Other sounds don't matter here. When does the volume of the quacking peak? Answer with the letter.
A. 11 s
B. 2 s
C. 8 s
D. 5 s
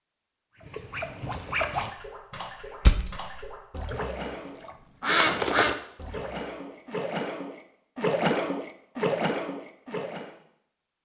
D.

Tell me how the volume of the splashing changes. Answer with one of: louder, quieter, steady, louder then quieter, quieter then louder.
louder.